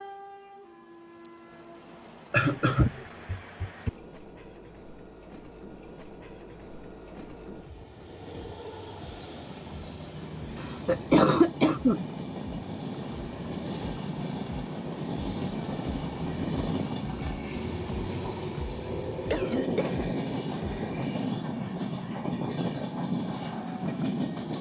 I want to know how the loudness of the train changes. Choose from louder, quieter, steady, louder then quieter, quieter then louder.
louder.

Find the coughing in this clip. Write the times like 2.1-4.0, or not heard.
2.3-3.9, 10.6-12.1, 19.3-20.1.